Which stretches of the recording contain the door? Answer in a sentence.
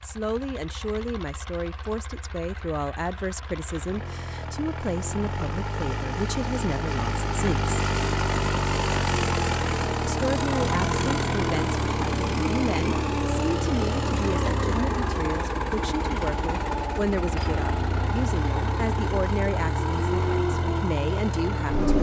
You can't hear the door here.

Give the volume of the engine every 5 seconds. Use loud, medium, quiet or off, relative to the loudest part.
quiet, loud, loud, loud, loud.